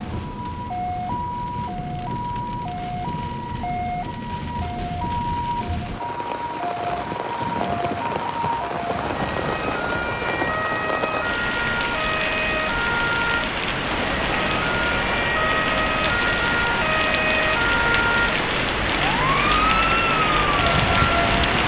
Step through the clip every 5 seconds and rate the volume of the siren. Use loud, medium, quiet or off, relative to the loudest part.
medium, medium, loud, loud, loud.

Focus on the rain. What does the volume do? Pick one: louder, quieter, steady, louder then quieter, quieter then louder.
louder.